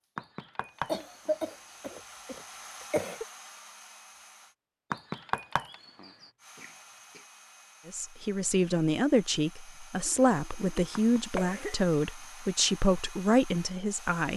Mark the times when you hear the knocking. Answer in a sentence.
The knocking can be heard from 0.1 to 1.9 s, from 4.9 to 6.3 s and from 10.9 to 11.5 s.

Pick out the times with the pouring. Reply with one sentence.
You can't hear the pouring here.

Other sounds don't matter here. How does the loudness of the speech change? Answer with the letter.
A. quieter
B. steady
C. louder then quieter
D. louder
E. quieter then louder
B.